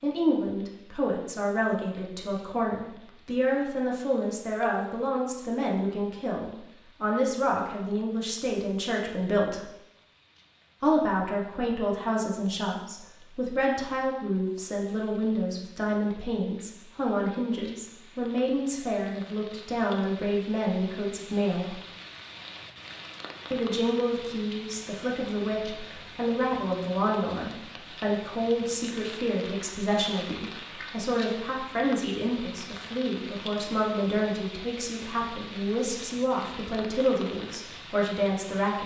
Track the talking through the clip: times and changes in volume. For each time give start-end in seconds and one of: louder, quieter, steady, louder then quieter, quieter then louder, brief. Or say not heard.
0.0-9.7 steady
10.8-21.8 steady
23.5-38.8 steady.